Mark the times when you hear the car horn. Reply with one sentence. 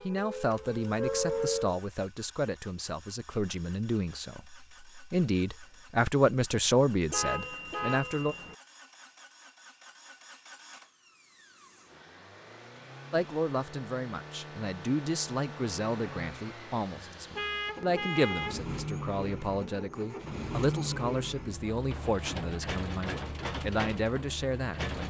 You can hear the car horn from 7.1 to 8.6 s and from 17.4 to 18.6 s.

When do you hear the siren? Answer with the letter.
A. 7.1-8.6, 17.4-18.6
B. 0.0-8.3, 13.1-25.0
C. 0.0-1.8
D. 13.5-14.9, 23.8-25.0
C.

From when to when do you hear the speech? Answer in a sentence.
You can hear the speech from 0.0 to 8.3 s and from 13.1 to 25.0 s.